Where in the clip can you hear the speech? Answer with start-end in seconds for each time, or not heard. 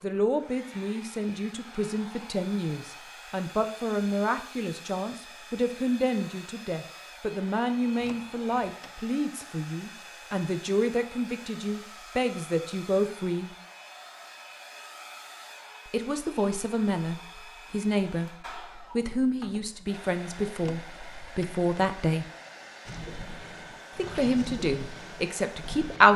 0.0-13.5, 15.9-22.3, 23.9-26.1.